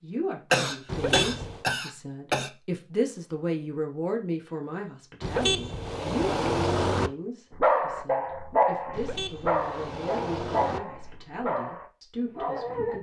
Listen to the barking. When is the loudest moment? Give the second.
8 s.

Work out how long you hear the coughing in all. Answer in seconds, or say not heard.
2 s.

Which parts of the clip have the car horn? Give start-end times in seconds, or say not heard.
0.8-1.6, 5.2-7.1, 8.9-10.8.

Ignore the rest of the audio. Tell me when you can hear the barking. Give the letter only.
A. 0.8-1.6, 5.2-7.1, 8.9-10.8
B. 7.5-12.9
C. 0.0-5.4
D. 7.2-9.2
B.